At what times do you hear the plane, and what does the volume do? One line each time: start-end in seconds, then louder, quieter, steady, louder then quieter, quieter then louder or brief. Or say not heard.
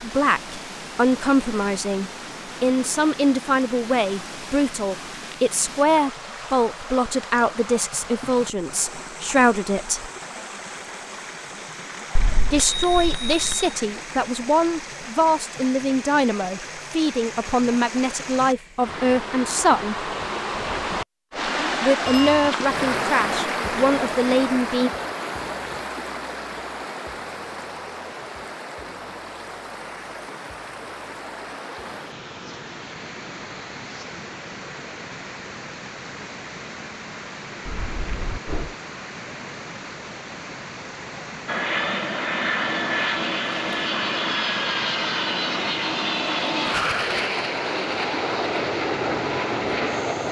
41.5-50.2 steady.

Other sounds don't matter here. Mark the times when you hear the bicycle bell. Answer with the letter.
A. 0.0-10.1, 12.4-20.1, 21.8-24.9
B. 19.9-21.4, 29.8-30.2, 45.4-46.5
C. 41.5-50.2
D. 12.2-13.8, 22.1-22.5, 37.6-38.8
D.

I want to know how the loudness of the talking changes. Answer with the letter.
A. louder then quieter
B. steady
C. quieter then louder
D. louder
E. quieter
B.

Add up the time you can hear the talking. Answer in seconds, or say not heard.
21 s.